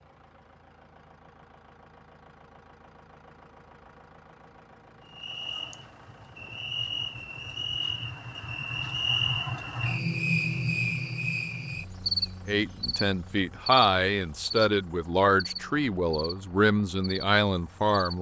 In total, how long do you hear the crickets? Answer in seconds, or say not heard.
13 s.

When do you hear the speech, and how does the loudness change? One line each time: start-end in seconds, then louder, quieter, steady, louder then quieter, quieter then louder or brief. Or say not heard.
12.4-18.1 steady.